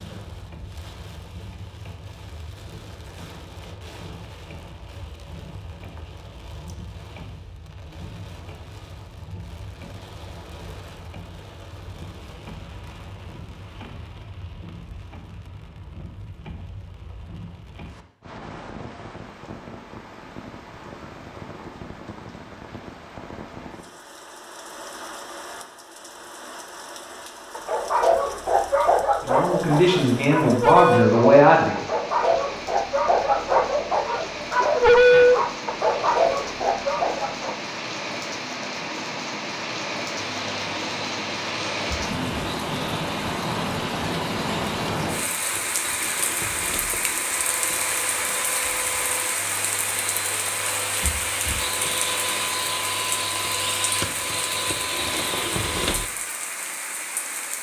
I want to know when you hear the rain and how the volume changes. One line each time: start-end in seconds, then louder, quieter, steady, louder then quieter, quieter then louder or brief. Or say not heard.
0.0-57.5 louder.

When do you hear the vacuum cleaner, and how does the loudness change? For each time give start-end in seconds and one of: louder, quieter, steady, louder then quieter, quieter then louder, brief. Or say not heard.
40.2-56.1 louder.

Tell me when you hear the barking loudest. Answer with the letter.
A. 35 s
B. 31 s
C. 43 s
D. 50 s
A.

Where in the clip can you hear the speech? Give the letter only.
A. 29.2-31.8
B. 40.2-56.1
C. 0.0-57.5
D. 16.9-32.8
A.